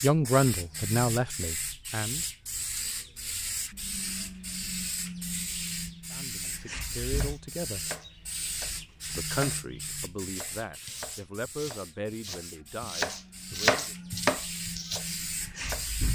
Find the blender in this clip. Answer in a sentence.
You can't hear the blender here.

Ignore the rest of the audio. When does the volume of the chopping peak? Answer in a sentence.
The volume of the chopping peaks at 14 seconds.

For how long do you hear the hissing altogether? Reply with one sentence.
You can hear the hissing for 16 seconds altogether.